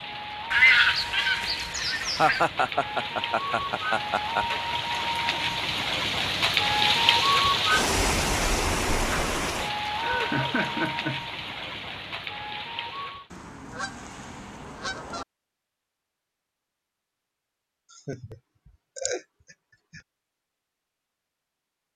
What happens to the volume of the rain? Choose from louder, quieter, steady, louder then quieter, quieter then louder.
louder then quieter.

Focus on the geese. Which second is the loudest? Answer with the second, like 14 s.
1 s.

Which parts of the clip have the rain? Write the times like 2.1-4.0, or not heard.
0.0-13.3.